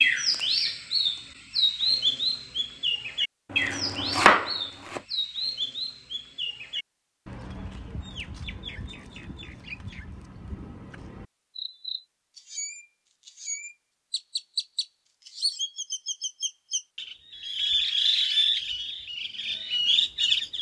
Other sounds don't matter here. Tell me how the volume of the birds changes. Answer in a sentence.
The loudness of the birds goes down, then up.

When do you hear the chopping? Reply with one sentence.
You can hear the chopping from 3.5 to 5.0 s.